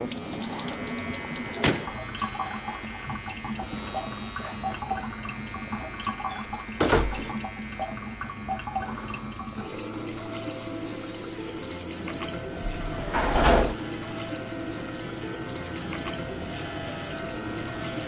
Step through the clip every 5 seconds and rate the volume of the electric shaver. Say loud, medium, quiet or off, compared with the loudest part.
loud, loud, medium, loud.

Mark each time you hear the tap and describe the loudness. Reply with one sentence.
You can hear the tap from 0.0 to 18.0 s, at a steady volume.